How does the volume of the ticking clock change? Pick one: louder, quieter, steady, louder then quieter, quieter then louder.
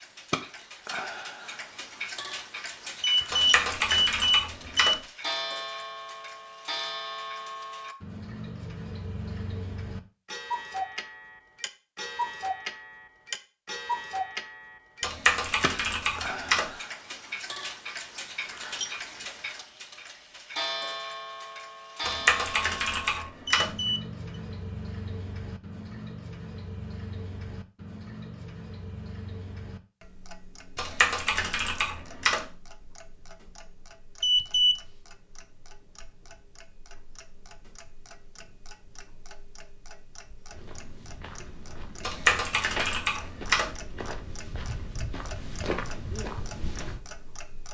quieter.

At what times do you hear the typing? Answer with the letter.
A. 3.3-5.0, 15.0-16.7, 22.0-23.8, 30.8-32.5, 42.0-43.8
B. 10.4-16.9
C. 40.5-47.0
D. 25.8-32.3
A.